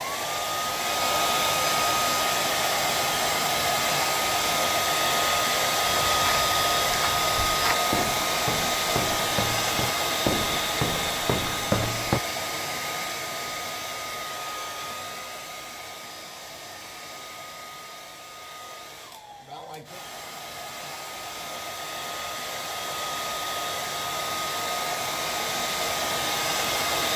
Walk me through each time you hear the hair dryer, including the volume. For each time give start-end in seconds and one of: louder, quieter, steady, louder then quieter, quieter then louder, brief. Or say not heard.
0.0-27.1 quieter then louder.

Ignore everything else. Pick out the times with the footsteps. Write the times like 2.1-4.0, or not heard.
5.8-12.2.